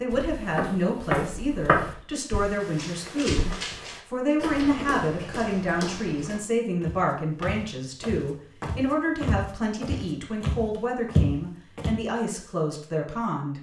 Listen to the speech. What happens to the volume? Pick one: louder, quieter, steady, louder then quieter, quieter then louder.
steady.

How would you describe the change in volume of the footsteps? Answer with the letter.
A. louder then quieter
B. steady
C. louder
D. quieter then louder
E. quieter
D.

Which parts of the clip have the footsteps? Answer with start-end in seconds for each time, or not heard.
0.1-11.9.